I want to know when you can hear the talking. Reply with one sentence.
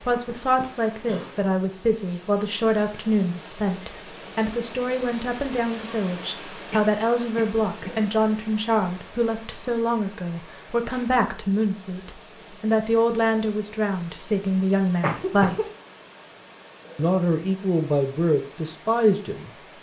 The talking can be heard from 0.0 to 15.6 s and from 16.9 to 19.5 s.